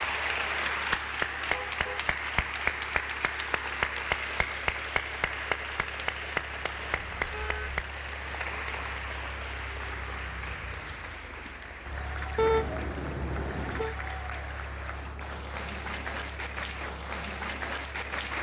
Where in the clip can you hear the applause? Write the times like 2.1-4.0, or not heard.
0.0-18.3.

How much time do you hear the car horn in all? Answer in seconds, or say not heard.
3 s.